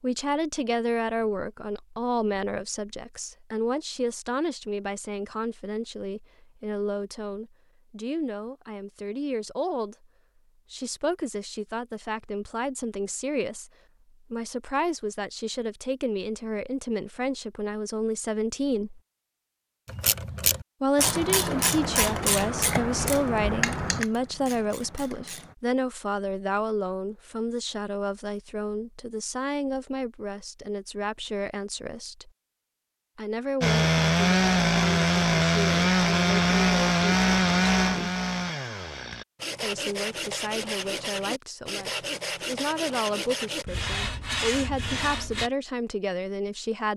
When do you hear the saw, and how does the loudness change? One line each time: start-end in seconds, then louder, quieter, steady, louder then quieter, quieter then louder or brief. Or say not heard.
33.6-45.5 quieter.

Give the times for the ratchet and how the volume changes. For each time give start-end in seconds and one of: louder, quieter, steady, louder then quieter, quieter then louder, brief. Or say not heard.
19.9-25.6 quieter.